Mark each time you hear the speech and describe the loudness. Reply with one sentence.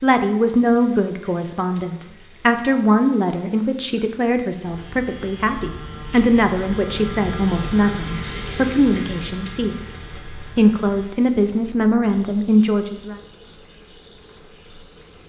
You can hear the speech from 0.0 to 13.2 s, at a steady volume.